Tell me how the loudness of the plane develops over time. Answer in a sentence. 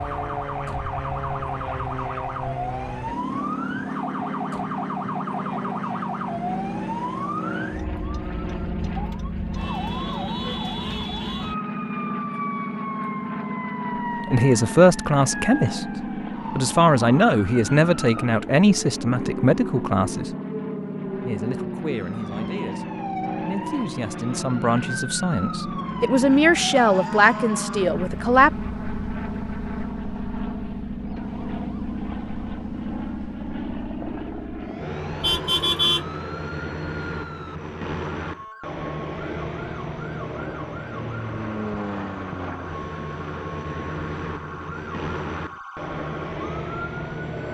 The loudness of the plane stays about the same.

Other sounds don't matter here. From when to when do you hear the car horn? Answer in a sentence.
You can hear the car horn from 35.2 to 36.0 s.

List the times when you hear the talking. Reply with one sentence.
The talking can be heard from 14.2 to 15.8 s, from 16.6 to 20.4 s and from 21.2 to 28.5 s.